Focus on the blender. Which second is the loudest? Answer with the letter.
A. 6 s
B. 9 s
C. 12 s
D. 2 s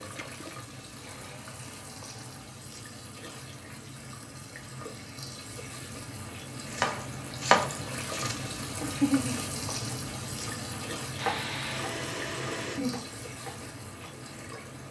C.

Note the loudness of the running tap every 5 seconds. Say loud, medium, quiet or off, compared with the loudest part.
medium, loud, loud.